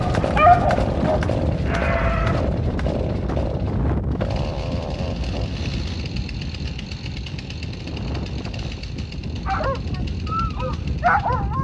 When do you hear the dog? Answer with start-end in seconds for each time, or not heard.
0.0-2.5, 9.4-11.5.